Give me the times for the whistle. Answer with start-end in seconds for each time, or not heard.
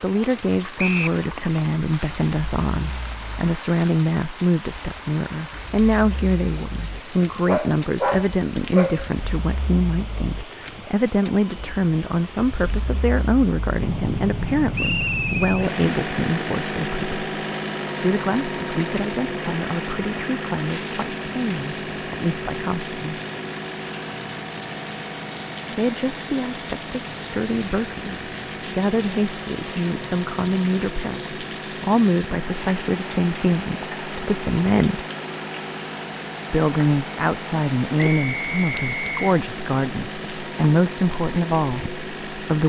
0.8-1.2, 14.8-15.7, 38.0-39.4.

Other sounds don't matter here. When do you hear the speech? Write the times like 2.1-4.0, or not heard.
0.0-17.4, 18.0-23.2, 25.8-35.0, 36.5-42.6.